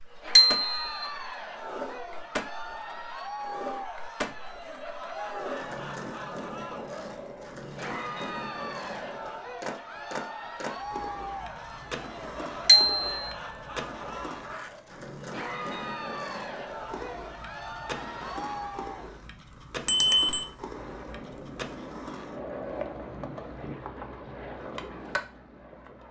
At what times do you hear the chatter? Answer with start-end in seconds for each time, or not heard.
0.1-19.2.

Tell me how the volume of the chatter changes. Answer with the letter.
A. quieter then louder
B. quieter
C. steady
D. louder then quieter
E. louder
C.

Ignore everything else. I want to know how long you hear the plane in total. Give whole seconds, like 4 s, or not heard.
5 s.